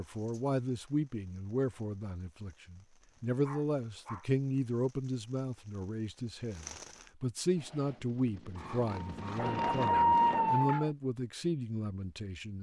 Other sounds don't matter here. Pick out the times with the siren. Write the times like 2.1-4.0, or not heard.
9.0-10.9.